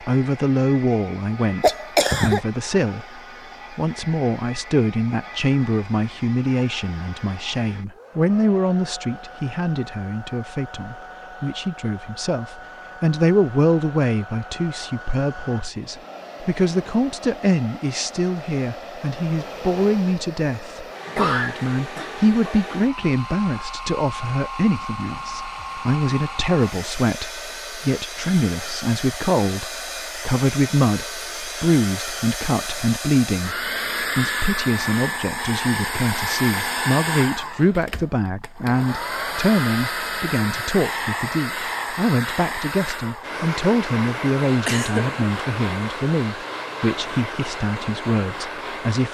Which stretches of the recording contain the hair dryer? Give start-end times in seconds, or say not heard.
0.0-49.0.